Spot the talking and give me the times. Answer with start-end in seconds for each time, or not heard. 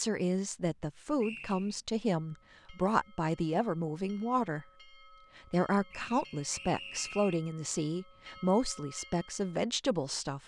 0.0-4.7, 5.3-10.4.